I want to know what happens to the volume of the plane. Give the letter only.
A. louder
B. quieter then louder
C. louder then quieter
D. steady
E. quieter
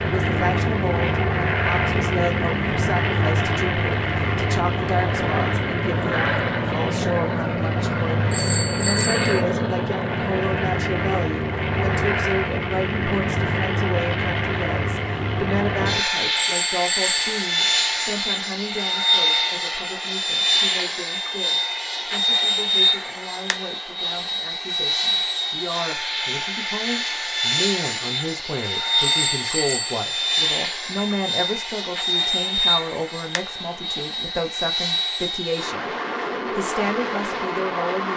D.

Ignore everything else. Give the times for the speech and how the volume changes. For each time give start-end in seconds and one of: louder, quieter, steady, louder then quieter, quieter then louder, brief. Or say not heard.
0.0-38.1 steady.